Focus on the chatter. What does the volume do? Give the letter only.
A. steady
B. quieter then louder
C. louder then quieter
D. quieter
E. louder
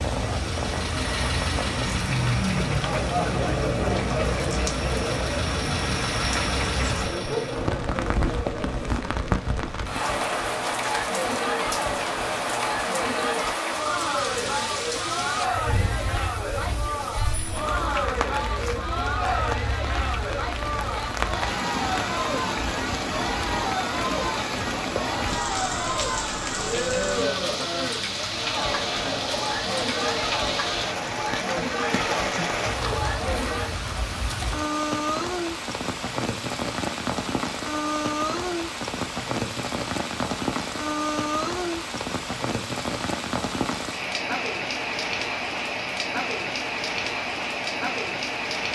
A.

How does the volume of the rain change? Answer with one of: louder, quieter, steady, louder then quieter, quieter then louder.
steady.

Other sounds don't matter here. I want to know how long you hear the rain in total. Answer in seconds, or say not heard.
49 s.